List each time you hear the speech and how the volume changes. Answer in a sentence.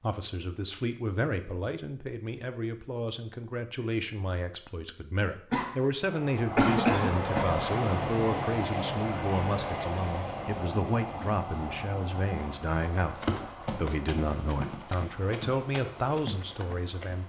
The speech can be heard from 0.0 to 17.2 s, at a steady volume.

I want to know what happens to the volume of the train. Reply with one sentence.
The volume of the train goes down.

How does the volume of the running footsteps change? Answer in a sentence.
The loudness of the running footsteps goes down, then up.